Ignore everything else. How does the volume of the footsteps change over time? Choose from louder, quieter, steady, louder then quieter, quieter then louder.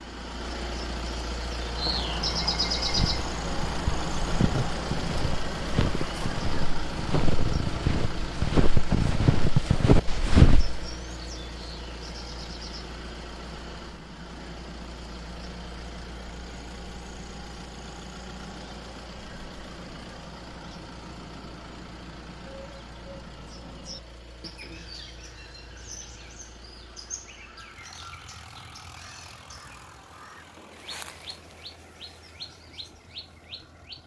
louder.